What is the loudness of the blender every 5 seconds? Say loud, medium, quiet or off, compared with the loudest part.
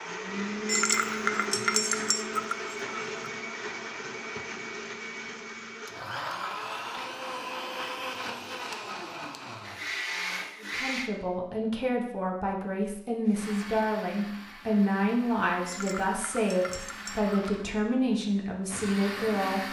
loud, loud, loud, medium.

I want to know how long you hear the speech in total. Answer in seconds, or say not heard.
9 s.